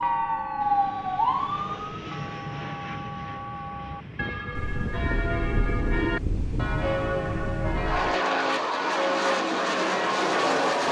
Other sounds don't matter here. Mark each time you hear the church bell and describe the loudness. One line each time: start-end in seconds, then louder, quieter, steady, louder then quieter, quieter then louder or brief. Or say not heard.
0.0-10.8 louder.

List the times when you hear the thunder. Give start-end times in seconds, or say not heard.
4.5-8.2.